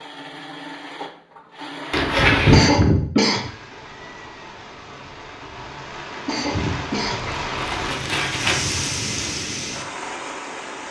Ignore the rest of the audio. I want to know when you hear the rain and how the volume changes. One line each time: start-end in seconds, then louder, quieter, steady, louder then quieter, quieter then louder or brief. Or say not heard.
3.3-10.8 louder.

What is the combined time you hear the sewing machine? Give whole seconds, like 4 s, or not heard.
2 s.